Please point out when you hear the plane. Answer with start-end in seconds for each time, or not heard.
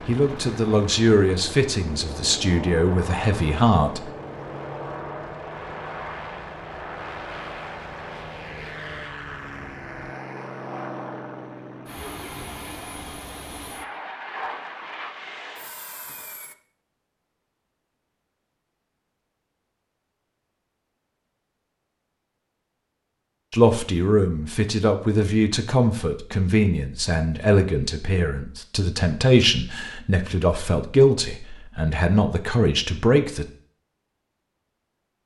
0.0-16.6.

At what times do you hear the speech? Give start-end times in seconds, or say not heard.
0.1-4.1, 23.5-33.5.